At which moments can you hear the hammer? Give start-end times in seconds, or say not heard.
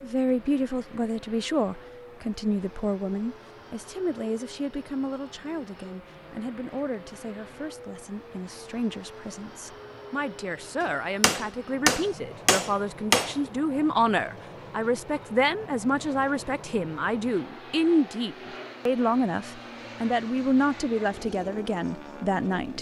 10.8-13.4.